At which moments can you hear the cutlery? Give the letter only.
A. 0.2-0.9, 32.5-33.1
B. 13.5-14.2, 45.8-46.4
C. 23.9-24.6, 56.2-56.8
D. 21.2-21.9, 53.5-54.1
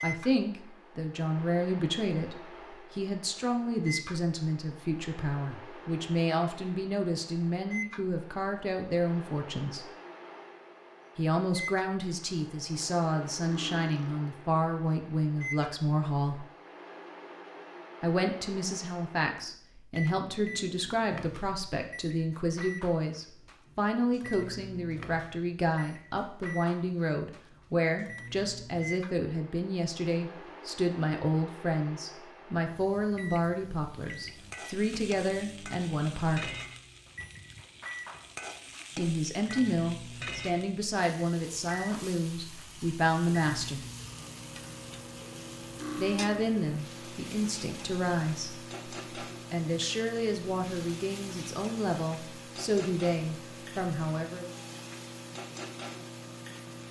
B.